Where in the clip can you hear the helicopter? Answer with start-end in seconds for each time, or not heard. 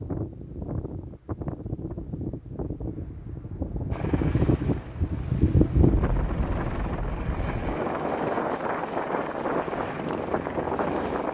3.9-11.3.